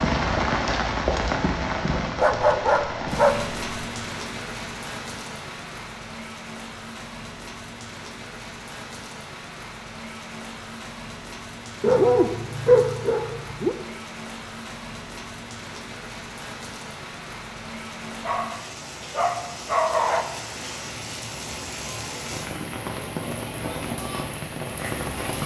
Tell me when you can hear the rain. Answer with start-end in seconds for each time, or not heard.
0.0-25.4.